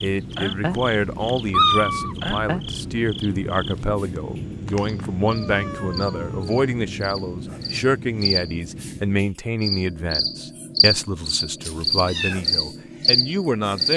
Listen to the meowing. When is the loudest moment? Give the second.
2 s.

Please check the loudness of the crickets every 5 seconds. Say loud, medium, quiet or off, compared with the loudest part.
medium, medium, loud.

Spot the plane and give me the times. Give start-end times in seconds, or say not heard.
0.0-9.1.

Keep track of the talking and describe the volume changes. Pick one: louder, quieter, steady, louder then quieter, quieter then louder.
steady.